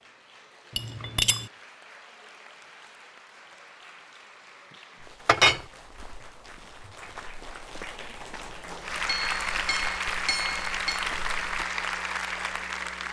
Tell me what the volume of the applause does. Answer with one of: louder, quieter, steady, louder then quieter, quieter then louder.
louder.